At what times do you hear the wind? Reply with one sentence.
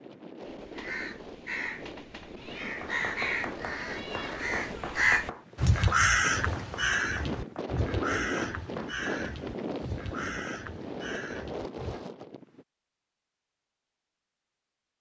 The wind can be heard from 0.0 to 12.7 s.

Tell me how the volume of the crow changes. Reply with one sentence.
The volume of the crow goes up, then down.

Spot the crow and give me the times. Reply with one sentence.
The crow can be heard from 0.5 to 12.1 s.